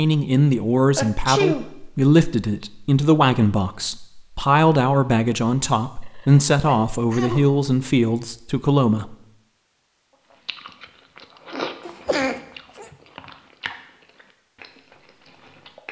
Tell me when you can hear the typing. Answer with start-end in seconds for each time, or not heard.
not heard.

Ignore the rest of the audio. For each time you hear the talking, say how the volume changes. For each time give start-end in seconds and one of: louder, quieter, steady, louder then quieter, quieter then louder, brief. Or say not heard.
0.0-9.2 steady.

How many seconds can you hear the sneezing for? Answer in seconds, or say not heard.
3 s.